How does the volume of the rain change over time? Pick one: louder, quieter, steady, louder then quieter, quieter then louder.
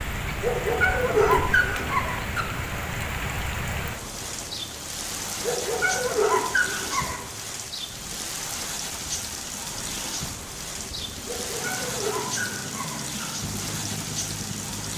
steady.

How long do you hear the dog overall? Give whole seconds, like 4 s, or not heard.
6 s.